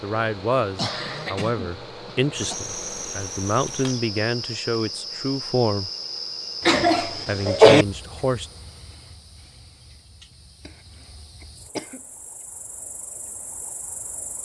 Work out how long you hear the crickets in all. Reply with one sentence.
The crickets can be heard for 12 seconds in total.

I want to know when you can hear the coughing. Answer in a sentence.
The coughing can be heard from 0.8 to 2.5 s, from 6.7 to 7.8 s and from 11.4 to 12.0 s.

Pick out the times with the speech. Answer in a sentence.
You can hear the speech from 0.0 to 5.9 s and from 7.0 to 8.5 s.